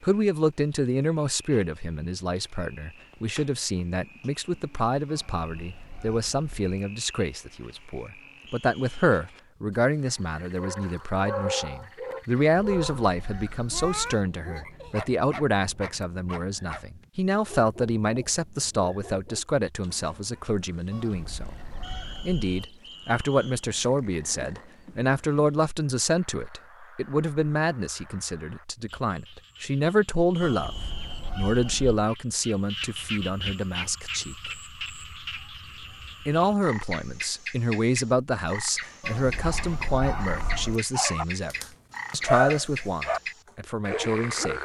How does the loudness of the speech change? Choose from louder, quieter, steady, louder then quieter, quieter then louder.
steady.